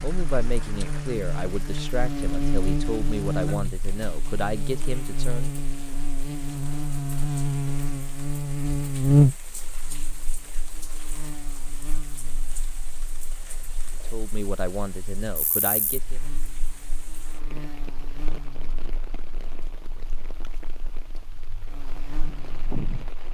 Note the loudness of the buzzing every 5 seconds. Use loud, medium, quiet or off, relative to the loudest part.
medium, loud, quiet, quiet, quiet.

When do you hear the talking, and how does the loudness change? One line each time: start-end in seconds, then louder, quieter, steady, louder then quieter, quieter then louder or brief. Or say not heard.
0.0-5.6 steady
14.1-16.2 brief.